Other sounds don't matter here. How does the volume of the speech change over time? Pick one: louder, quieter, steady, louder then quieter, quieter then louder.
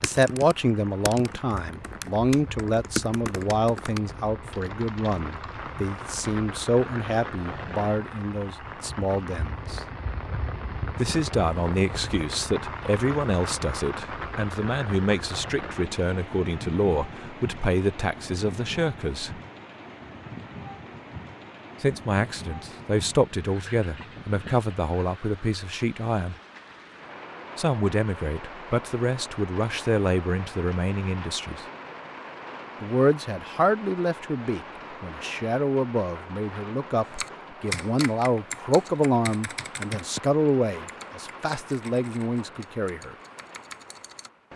steady.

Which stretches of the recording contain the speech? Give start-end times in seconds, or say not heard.
0.0-9.8, 10.9-19.4, 21.8-26.4, 27.6-31.6, 32.8-43.1.